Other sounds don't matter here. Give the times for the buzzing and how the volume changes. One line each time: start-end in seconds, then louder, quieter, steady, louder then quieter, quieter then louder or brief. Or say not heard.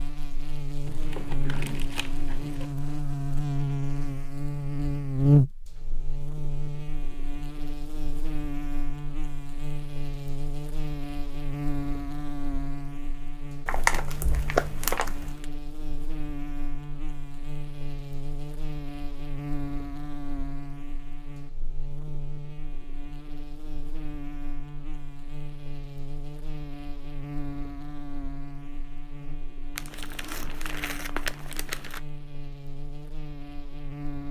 0.0-34.2 quieter.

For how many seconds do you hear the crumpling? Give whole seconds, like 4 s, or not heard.
6 s.